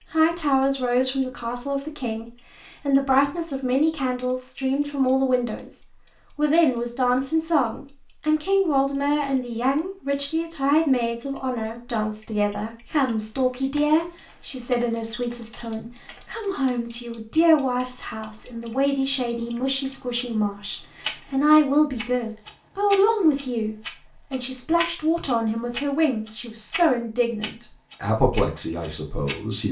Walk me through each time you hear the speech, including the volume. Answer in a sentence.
The speech can be heard from 0.1 to 29.6 s, at a steady volume.